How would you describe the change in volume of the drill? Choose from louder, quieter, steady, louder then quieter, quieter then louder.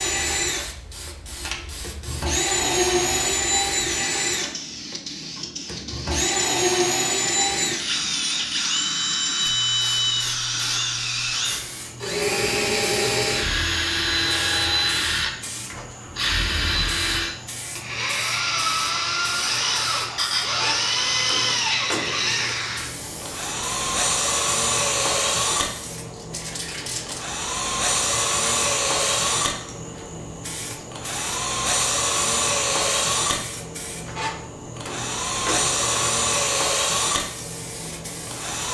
steady.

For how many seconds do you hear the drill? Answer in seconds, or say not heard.
39 s.